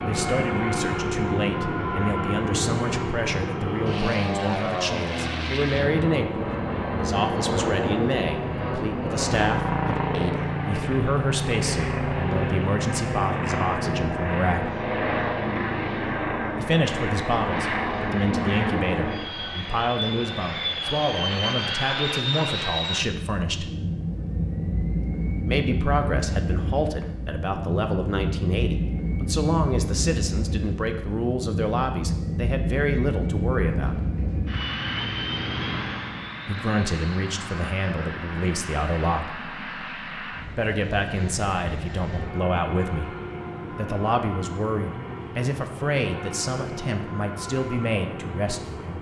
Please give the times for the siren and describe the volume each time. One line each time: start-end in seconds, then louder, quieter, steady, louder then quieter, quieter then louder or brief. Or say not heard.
not heard.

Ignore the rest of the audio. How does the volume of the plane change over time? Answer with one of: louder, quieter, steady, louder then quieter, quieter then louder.
quieter.